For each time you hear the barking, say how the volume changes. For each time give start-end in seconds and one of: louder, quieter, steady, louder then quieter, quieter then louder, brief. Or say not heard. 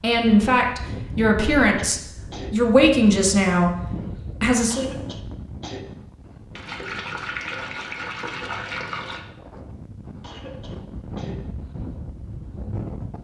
not heard.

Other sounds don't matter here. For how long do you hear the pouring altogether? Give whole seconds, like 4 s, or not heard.
3 s.